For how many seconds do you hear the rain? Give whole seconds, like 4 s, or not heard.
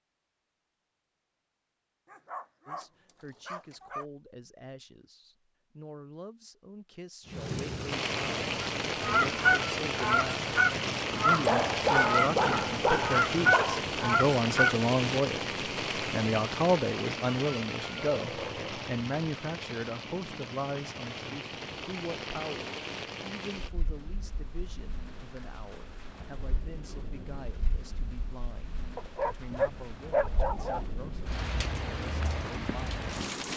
26 s.